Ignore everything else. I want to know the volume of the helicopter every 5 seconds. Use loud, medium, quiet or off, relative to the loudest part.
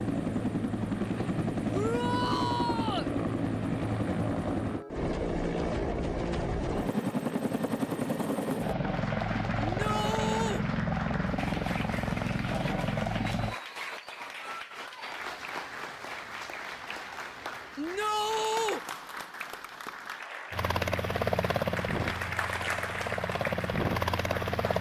loud, loud, loud, off, loud.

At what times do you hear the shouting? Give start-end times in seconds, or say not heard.
1.7-3.1, 9.6-10.7, 17.8-18.8.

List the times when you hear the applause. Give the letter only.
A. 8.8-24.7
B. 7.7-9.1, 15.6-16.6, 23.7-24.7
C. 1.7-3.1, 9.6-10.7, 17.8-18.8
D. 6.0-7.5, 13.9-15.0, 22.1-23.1
A.